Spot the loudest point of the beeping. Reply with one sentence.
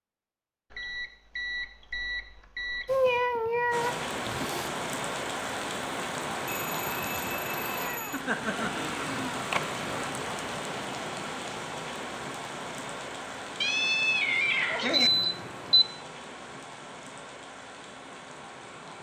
The loudest moment of the beeping is at 15 seconds.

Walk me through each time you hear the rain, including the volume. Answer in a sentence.
You can hear the rain from 3.7 to 18.9 s, getting quieter.